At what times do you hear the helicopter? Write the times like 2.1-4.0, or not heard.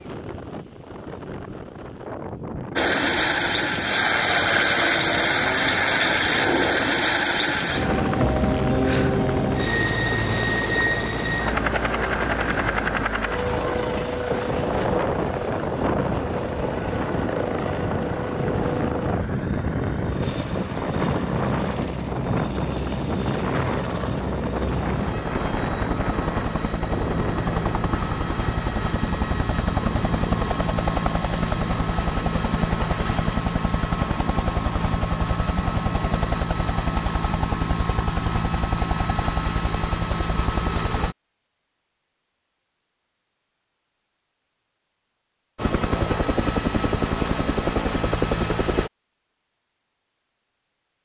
2.8-41.1, 45.5-48.9.